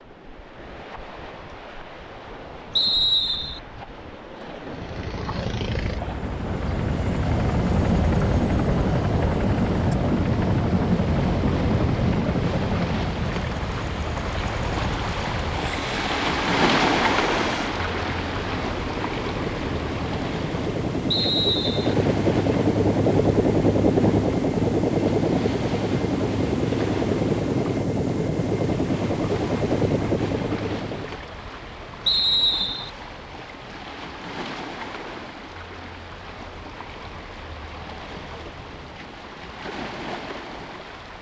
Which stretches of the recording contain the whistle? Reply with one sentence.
The whistle can be heard from 2.8 to 3.6 s, from 21.1 to 21.9 s and from 32.0 to 32.9 s.